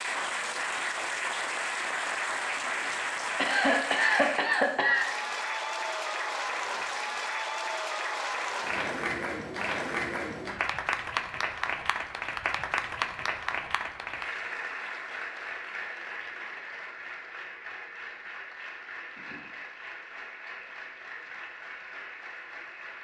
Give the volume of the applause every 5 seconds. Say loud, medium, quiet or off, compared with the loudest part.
loud, loud, loud, medium, medium.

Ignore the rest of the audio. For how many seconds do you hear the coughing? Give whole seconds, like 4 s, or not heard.
2 s.